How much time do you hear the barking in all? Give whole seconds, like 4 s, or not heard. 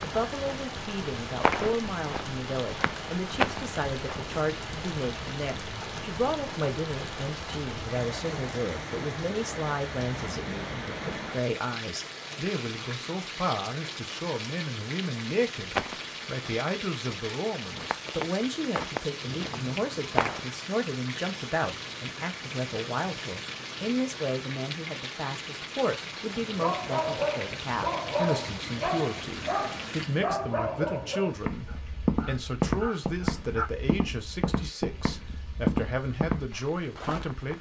7 s.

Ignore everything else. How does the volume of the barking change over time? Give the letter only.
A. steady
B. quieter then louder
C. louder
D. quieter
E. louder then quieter
D.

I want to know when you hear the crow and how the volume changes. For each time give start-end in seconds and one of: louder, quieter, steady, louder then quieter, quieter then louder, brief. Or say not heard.
not heard.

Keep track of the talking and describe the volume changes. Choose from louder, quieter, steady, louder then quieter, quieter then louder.
steady.